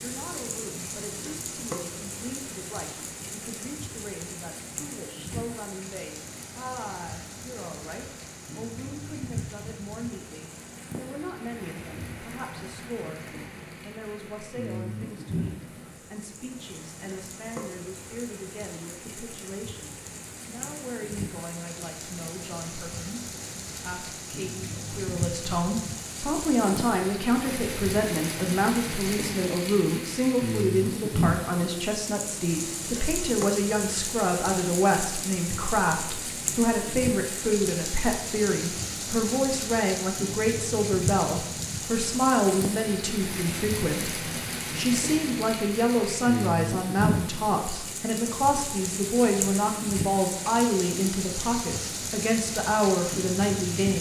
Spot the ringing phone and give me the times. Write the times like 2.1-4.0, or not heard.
not heard.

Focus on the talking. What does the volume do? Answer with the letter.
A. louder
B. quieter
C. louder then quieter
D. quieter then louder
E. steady
A.